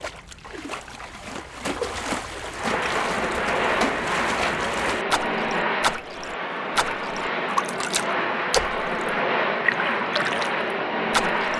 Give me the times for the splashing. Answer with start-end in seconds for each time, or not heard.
0.0-11.5.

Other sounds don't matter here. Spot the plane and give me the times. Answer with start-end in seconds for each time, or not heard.
2.5-11.5.